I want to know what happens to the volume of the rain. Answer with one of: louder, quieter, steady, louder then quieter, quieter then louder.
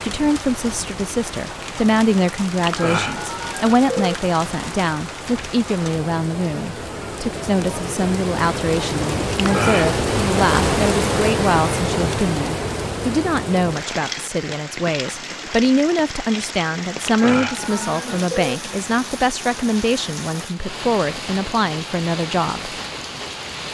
louder then quieter.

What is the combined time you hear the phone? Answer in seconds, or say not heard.
4 s.